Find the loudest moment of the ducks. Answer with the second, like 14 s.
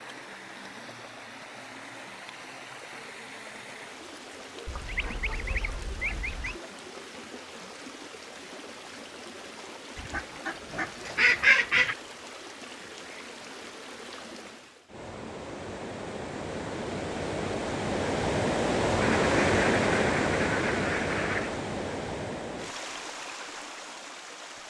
11 s.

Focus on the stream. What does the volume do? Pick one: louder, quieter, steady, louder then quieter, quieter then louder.
louder.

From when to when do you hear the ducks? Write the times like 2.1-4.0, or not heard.
4.7-6.6, 9.9-11.9, 19.0-21.6.